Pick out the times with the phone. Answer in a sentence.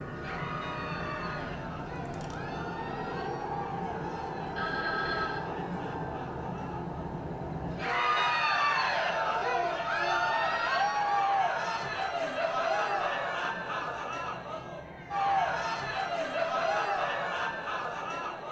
The phone can be heard from 4.5 to 5.5 s.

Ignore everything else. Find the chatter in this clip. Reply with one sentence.
The chatter can be heard from 0.0 to 18.4 s.